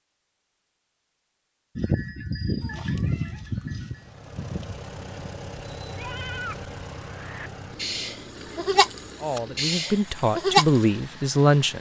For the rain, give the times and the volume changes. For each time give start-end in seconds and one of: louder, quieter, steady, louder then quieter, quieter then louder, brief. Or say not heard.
not heard.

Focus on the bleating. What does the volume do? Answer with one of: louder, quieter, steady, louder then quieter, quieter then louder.
quieter then louder.